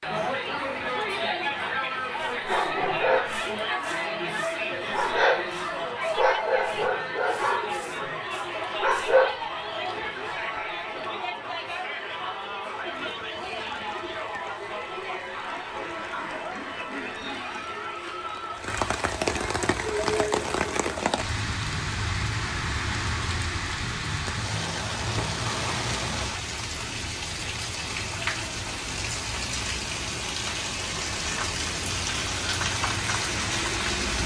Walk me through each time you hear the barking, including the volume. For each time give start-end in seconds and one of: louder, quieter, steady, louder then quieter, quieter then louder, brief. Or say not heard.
2.5-9.4 steady.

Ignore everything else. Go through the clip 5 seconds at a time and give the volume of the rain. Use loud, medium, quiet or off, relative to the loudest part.
off, off, quiet, medium, loud, loud, loud.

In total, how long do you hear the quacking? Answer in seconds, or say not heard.
2 s.